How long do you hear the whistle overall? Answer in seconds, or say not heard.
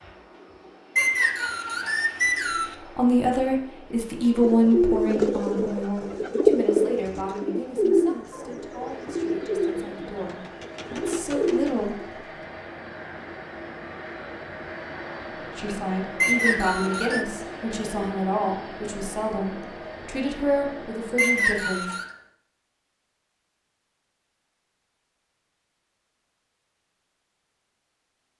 4 s.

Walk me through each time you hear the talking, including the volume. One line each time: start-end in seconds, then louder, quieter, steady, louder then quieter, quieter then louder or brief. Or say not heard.
3.0-12.1 quieter then louder
15.6-21.9 steady.